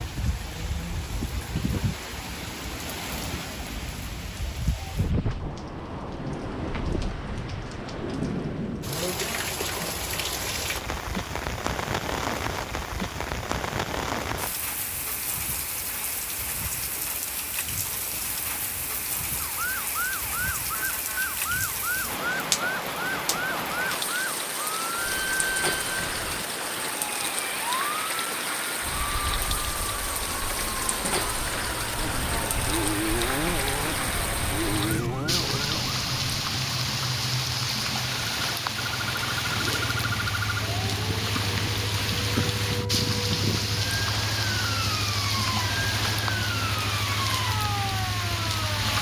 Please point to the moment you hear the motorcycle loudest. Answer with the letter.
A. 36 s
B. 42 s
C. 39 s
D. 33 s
D.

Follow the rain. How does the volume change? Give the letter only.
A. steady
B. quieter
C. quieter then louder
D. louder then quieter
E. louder
A.